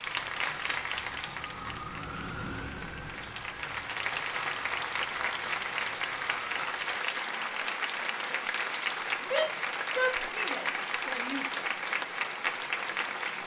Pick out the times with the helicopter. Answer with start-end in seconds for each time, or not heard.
not heard.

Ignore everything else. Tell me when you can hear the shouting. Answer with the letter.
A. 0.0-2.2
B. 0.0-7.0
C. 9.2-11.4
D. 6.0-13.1
C.